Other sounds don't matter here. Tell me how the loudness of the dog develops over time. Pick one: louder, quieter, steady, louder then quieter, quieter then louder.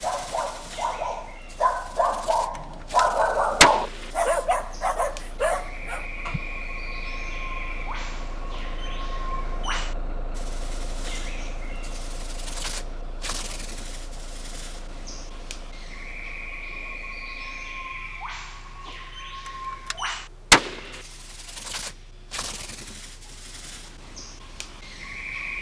louder then quieter.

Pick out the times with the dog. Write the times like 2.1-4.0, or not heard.
0.0-6.4.